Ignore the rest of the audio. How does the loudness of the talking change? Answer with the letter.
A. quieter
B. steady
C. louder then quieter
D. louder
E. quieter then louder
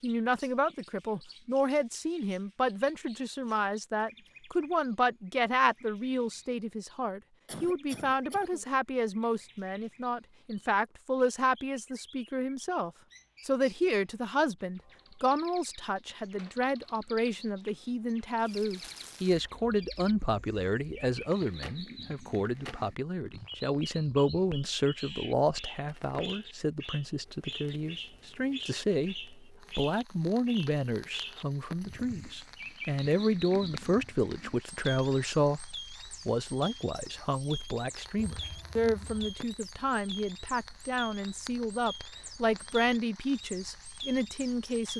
B.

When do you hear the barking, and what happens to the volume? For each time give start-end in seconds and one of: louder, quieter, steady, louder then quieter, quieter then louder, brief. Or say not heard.
not heard.